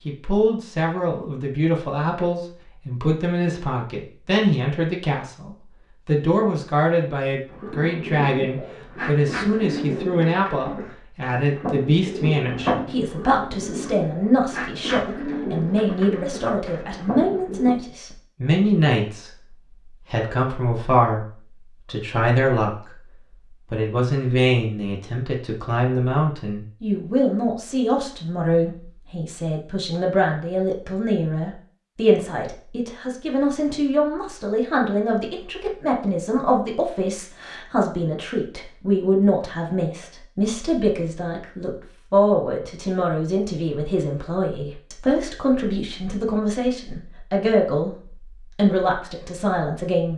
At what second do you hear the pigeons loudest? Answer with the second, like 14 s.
13 s.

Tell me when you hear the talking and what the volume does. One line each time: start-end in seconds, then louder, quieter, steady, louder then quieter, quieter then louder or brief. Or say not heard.
0.1-19.3 steady
20.1-21.2 brief
21.9-22.8 brief
23.7-50.1 steady.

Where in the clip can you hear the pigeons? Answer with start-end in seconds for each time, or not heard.
7.5-17.8.